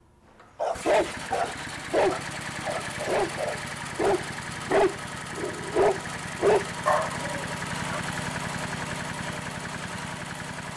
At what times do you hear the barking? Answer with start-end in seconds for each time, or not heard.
0.6-8.0.